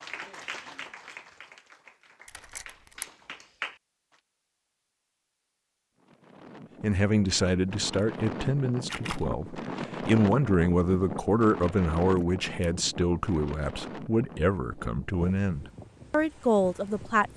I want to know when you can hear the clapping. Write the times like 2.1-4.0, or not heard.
0.0-3.8.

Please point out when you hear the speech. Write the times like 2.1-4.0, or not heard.
6.8-17.3.